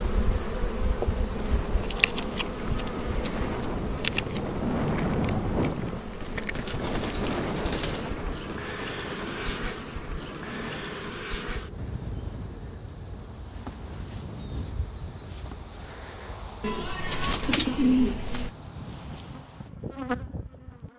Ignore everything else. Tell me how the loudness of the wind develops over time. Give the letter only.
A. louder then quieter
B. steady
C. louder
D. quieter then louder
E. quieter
E.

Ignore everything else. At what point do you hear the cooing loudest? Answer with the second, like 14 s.
18 s.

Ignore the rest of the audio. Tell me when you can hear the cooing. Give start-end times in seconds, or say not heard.
6.5-8.1, 16.6-18.5.